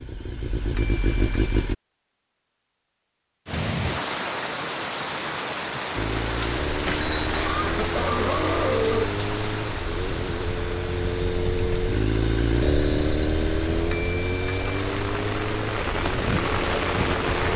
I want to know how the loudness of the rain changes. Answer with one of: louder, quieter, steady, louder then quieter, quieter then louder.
quieter then louder.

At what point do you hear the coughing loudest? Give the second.
9 s.